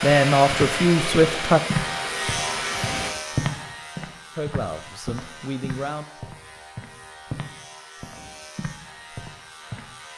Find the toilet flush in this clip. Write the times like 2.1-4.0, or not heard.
not heard.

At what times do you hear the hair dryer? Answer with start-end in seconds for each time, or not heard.
0.0-3.1.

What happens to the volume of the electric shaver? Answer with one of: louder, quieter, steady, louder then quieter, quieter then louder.
quieter.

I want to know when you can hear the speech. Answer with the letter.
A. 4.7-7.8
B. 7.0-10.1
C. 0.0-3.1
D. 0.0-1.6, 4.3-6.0
D.